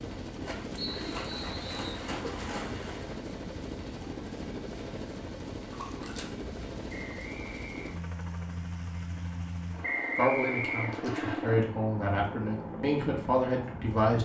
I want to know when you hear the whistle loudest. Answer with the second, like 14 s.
10 s.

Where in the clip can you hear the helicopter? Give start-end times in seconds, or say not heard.
0.0-14.2.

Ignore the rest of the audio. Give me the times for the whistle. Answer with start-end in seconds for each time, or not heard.
0.8-2.0, 6.8-8.0, 9.8-11.3.